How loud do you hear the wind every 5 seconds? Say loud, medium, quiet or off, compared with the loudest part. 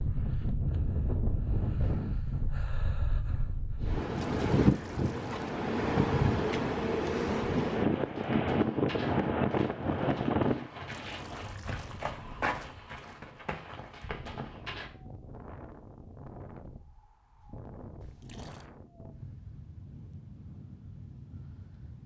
loud, loud, medium, quiet, quiet.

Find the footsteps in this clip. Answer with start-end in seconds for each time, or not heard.
7.8-14.9.